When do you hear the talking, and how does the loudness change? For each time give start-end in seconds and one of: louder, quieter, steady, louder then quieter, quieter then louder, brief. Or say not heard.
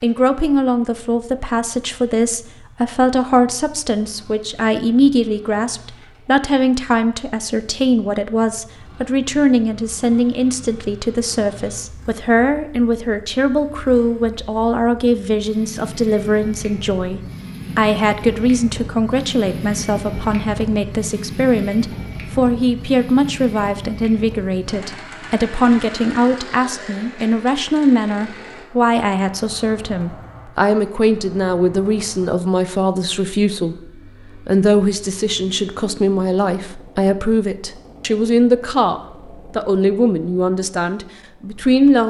0.0-42.0 steady.